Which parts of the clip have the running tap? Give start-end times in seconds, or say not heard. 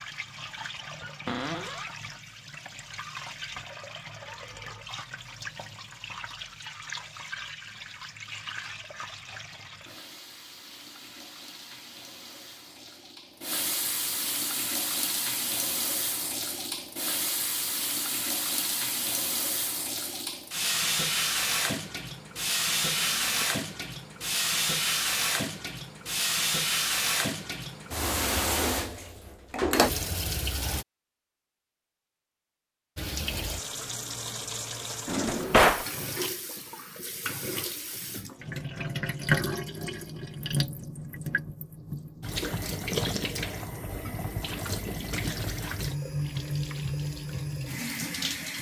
0.0-30.9, 33.0-48.5.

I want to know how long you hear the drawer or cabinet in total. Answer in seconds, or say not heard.
2 s.